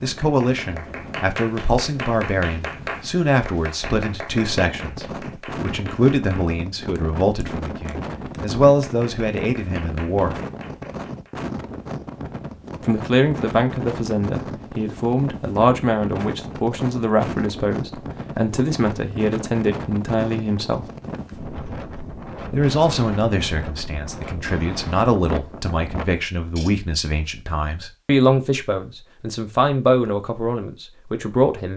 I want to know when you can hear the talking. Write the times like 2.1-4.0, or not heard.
0.0-10.4, 12.8-20.9, 22.5-31.7.